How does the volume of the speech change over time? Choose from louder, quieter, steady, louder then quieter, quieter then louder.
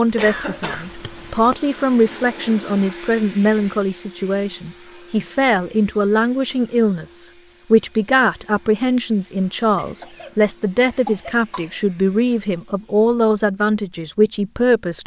steady.